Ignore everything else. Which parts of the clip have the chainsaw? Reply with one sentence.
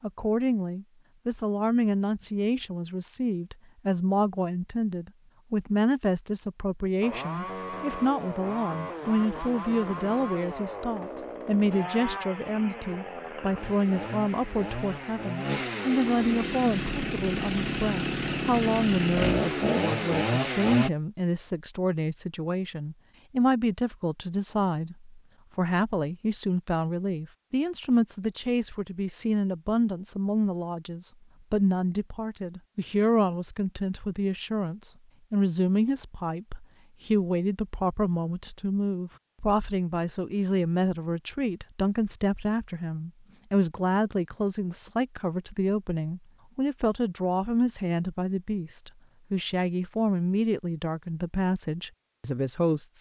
The chainsaw can be heard from 7.0 to 20.9 s.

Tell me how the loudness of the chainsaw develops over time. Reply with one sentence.
The volume of the chainsaw goes up.